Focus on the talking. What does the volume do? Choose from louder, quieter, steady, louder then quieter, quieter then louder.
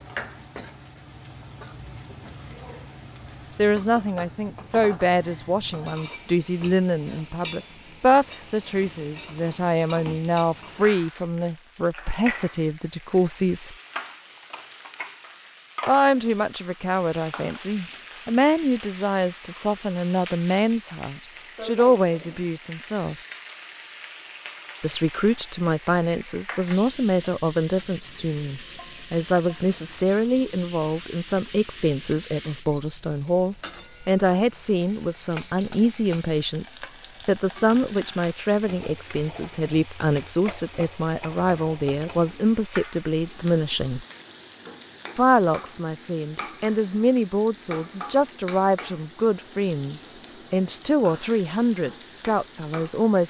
steady.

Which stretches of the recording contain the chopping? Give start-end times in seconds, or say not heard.
not heard.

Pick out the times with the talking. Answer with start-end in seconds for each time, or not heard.
3.5-13.8, 15.8-23.1, 24.8-44.0, 45.1-53.2.